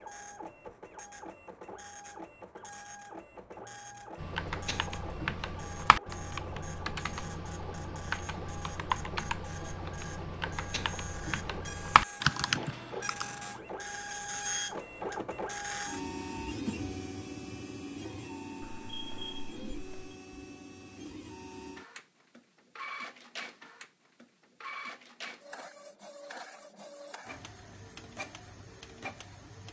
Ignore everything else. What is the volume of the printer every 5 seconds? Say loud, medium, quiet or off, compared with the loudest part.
medium, medium, loud, loud, medium, medium.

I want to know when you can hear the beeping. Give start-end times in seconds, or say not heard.
18.6-20.1.